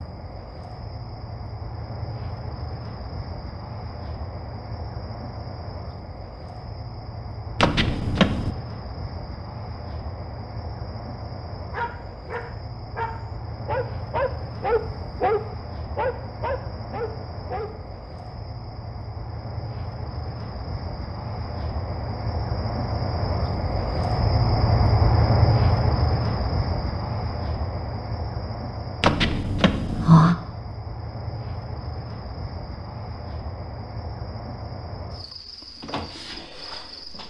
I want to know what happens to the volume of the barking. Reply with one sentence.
The loudness of the barking goes up, then down.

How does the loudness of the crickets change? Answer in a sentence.
The loudness of the crickets goes up, then down.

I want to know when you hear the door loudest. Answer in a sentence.
The loudest moment of the door is at 30 seconds.